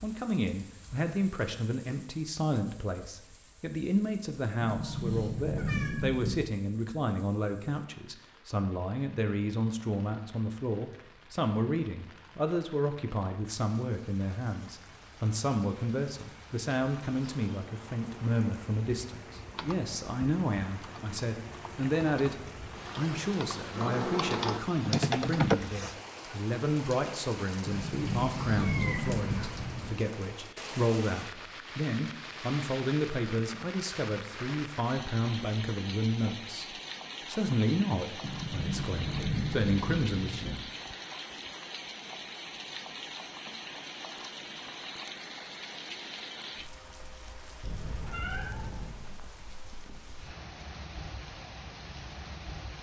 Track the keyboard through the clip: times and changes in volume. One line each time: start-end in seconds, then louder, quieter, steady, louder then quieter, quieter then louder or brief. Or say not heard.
17.2-25.6 louder.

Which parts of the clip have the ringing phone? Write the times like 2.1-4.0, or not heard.
not heard.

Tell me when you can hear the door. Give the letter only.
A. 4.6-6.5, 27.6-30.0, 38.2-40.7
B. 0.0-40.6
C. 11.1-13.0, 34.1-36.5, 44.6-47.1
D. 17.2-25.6
A.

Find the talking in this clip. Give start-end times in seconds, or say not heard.
0.0-40.6.